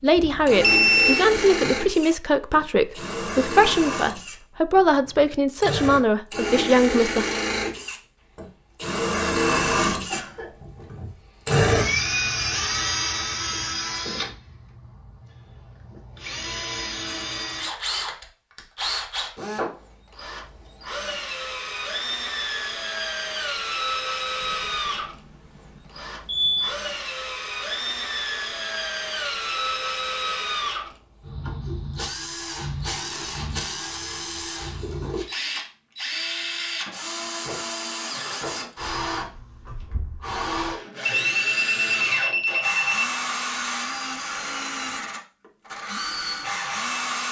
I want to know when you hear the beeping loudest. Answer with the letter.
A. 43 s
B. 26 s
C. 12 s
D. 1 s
D.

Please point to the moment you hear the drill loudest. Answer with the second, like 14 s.
12 s.